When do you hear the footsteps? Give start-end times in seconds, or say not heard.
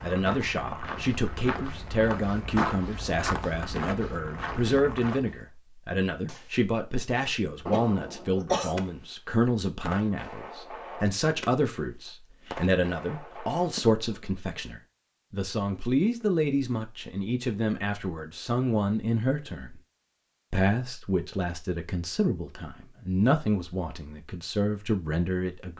0.0-5.5.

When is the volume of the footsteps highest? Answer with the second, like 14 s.
3 s.